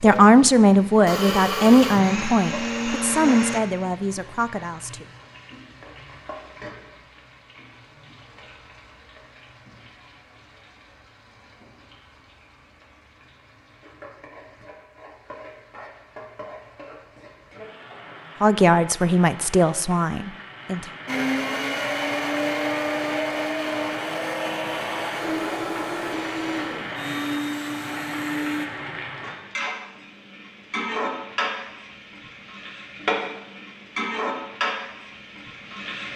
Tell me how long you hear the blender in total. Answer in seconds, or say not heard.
11 s.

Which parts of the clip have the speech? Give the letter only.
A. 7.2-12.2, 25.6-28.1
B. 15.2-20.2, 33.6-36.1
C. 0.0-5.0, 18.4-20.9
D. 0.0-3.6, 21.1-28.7
C.